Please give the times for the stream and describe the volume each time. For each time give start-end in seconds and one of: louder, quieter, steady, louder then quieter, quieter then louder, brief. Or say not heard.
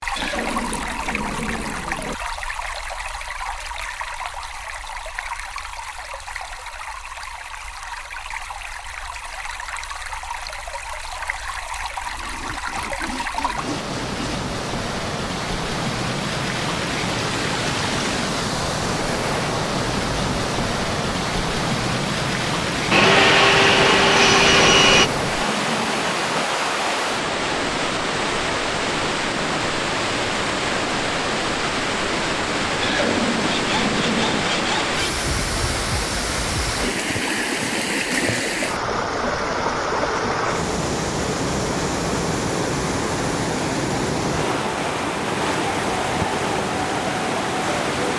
0.0-48.1 louder.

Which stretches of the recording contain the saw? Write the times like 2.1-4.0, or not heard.
12.0-14.4, 22.9-25.1, 33.5-35.2.